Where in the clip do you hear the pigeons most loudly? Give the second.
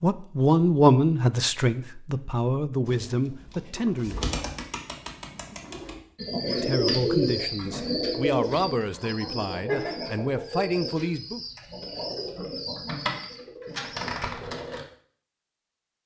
7 s.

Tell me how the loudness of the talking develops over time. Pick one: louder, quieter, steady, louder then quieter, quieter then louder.
quieter.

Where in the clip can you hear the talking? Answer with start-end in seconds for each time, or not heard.
0.0-4.3, 6.5-11.4.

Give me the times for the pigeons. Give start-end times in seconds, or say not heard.
2.9-14.8.